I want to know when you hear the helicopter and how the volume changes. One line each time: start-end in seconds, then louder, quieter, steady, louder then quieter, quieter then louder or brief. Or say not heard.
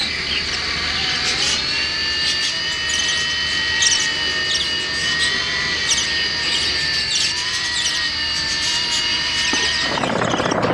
0.0-10.7 steady.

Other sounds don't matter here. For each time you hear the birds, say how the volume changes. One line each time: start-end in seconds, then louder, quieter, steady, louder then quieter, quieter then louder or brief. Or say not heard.
0.0-10.7 steady.